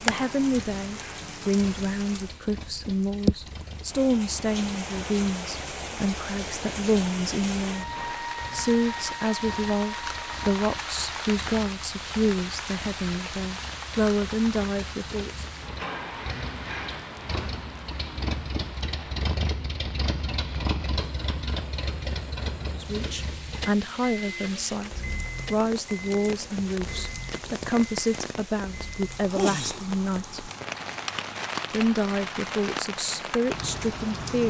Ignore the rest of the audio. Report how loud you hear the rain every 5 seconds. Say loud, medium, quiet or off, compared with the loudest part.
loud, loud, loud, medium, medium, loud, loud.